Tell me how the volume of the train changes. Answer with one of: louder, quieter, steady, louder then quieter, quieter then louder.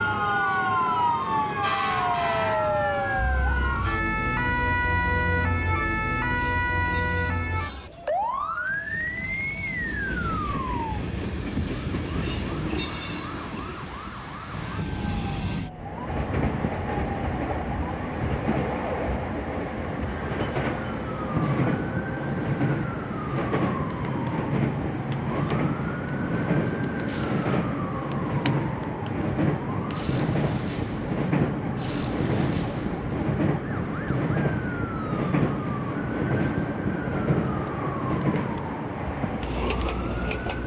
louder.